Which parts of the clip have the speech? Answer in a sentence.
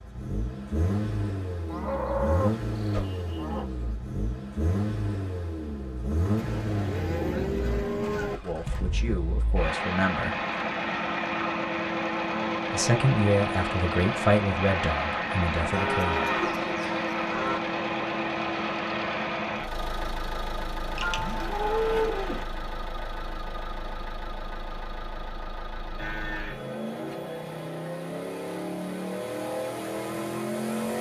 The speech can be heard from 8.4 to 10.4 s and from 12.7 to 16.2 s.